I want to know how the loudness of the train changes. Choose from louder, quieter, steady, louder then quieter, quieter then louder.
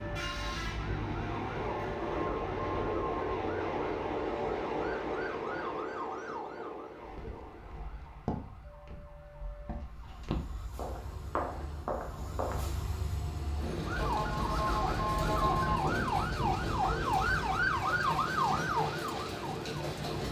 quieter then louder.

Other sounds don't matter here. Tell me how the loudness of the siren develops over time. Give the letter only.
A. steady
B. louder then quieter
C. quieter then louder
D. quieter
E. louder
C.